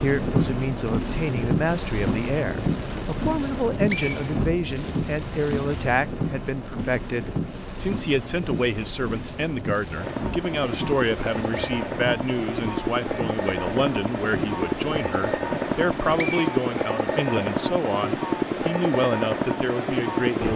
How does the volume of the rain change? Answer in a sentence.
The loudness of the rain goes down.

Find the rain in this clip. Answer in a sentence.
You can hear the rain from 0.0 to 16.2 s.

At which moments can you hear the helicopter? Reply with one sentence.
You can hear the helicopter from 9.9 to 20.5 s.